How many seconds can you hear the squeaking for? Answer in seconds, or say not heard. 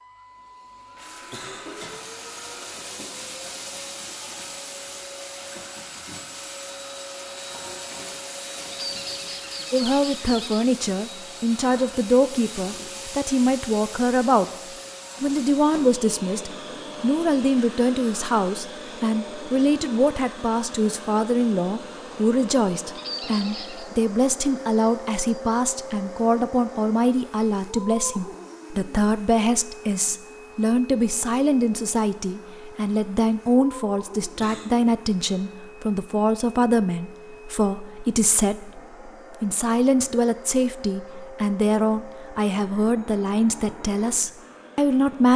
3 s.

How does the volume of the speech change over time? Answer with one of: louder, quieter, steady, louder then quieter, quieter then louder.
steady.